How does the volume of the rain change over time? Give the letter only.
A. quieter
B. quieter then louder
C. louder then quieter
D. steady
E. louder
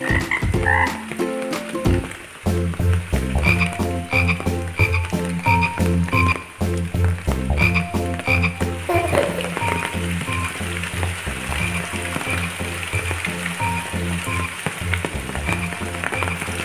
E.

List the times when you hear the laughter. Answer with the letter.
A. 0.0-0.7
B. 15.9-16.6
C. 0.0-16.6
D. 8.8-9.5
D.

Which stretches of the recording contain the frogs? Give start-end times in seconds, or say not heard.
0.0-16.6.